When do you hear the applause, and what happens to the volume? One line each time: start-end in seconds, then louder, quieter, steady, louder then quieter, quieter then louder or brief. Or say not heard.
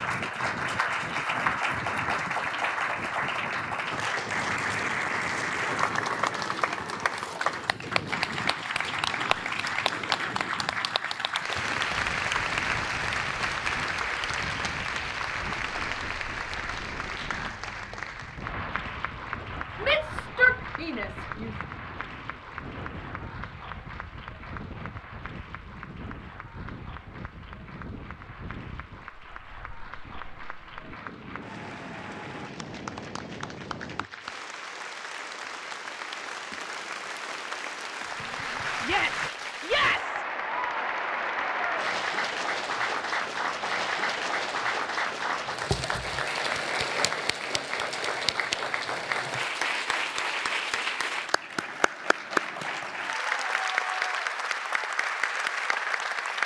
0.0-56.4 quieter then louder.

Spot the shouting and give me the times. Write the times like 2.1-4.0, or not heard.
19.8-21.5, 38.8-40.2.